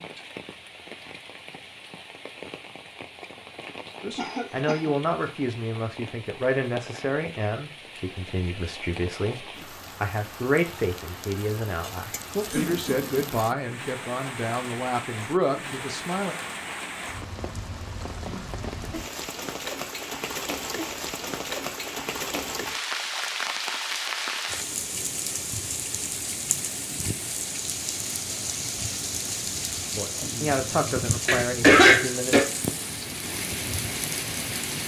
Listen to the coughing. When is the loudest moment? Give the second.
32 s.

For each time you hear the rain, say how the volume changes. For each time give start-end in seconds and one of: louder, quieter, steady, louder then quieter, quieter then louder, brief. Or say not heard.
0.0-34.8 louder.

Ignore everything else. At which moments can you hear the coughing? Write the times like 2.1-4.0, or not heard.
4.2-5.0, 12.4-13.3, 31.2-32.5.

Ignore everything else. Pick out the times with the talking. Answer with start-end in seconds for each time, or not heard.
4.0-16.4, 29.9-32.4.